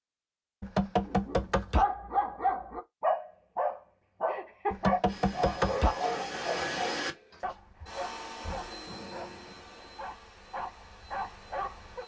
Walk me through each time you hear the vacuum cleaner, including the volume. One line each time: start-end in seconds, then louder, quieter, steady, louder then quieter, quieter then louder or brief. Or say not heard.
5.0-12.0 quieter.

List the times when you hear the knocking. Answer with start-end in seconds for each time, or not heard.
0.6-1.9, 4.7-6.0, 8.4-8.8.